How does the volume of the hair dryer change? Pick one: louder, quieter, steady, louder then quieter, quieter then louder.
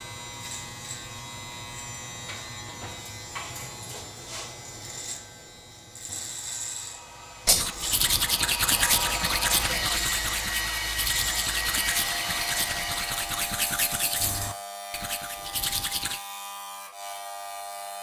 louder.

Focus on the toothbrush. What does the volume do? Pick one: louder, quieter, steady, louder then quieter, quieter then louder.
quieter.